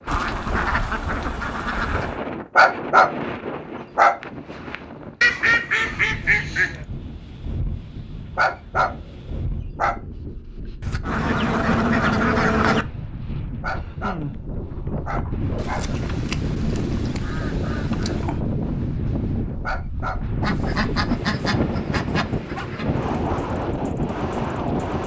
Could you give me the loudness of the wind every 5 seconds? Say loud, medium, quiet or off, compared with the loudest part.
medium, medium, medium, loud, loud.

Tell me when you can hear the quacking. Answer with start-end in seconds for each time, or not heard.
0.1-2.2, 5.2-6.8, 10.8-12.8, 15.6-18.4, 20.4-22.9.